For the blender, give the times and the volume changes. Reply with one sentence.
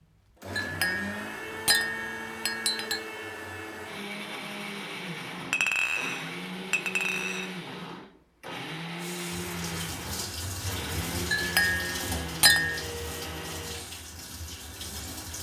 The blender can be heard from 0.0 to 14.1 s, at a steady volume.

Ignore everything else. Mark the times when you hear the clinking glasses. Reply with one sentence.
You can hear the clinking glasses from 0.6 to 3.0 s, from 5.5 to 7.5 s and from 11.3 to 12.8 s.